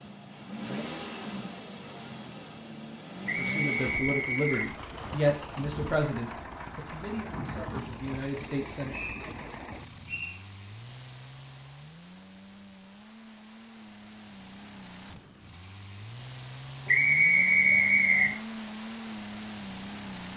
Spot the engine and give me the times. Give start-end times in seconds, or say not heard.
0.0-20.3.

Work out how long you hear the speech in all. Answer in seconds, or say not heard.
6 s.